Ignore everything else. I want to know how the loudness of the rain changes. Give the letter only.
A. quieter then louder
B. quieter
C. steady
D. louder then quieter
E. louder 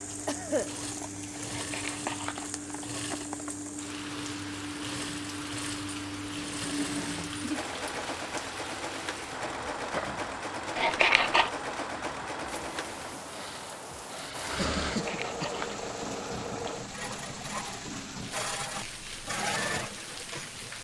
C.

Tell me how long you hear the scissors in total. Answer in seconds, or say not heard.
3 s.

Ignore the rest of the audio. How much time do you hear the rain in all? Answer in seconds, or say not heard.
21 s.